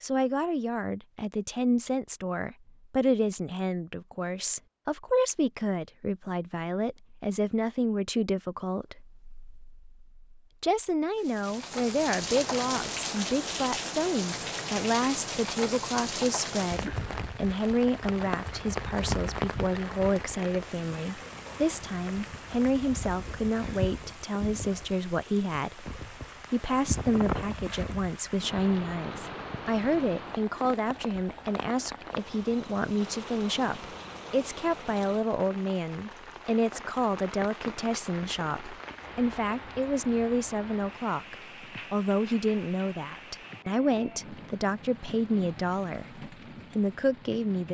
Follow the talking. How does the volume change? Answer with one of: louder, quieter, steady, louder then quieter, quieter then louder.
steady.